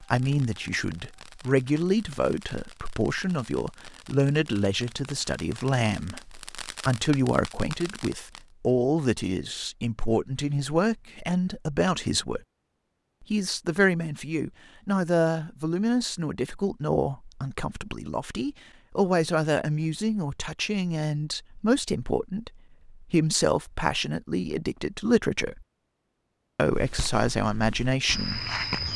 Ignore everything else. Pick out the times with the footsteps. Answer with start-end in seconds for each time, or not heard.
26.7-28.9.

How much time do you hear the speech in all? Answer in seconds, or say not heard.
27 s.